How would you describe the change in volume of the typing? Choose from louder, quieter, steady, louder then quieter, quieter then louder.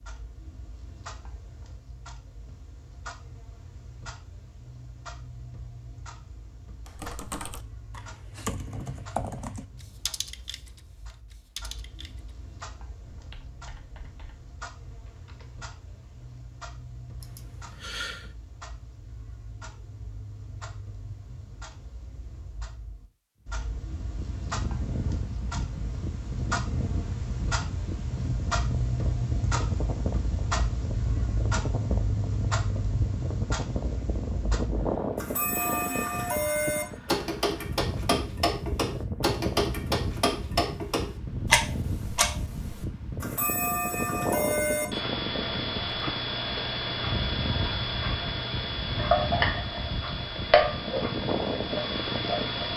quieter.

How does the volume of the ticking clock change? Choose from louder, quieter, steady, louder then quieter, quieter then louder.
louder.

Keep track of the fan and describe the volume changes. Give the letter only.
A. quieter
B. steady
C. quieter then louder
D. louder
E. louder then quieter
B.